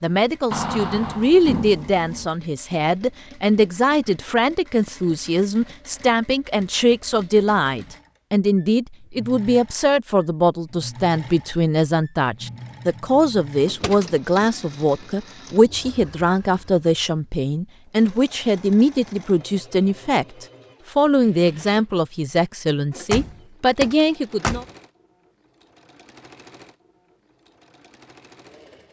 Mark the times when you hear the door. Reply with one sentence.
The door can be heard from 0.5 to 2.3 s, from 13.7 to 14.6 s and from 22.9 to 24.6 s.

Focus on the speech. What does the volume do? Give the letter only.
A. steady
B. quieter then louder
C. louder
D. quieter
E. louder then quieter
A.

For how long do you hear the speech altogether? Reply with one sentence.
You can hear the speech for 25 seconds altogether.